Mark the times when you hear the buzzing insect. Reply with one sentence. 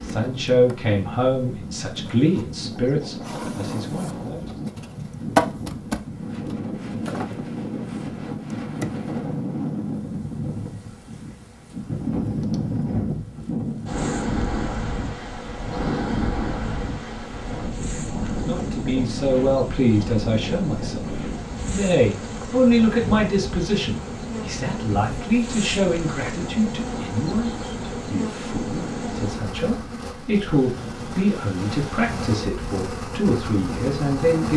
You can hear the buzzing insect from 0.0 to 34.5 s.